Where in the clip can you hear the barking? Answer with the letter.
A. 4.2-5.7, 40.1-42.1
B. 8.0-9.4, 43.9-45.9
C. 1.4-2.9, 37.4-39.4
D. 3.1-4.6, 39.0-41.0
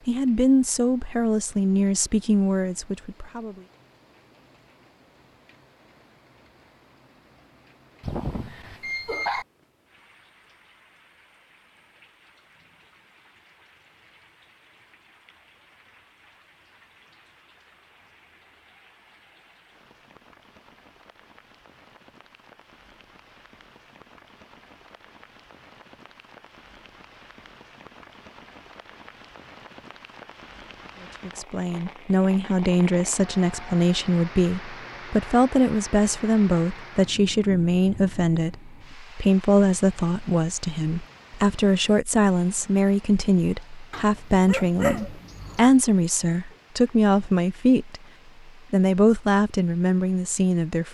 B.